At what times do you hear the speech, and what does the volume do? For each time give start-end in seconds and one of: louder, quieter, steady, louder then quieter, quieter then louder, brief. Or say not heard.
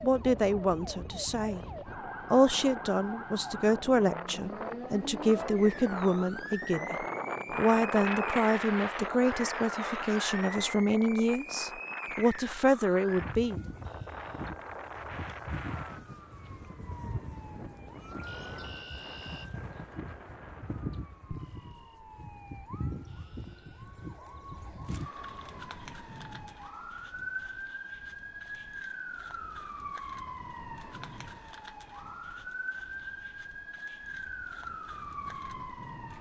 0.0-1.6 brief
2.3-13.6 steady.